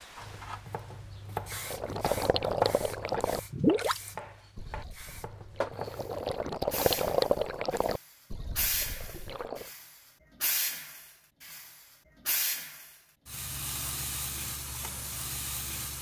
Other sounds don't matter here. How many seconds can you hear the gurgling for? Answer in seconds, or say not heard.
8 s.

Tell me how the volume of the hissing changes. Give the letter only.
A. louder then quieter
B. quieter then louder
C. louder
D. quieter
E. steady
C.